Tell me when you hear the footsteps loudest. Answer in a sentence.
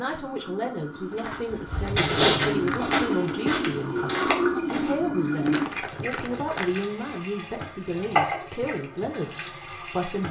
The volume of the footsteps peaks at 2 seconds.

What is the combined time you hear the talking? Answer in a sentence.
You can hear the talking for 10 seconds altogether.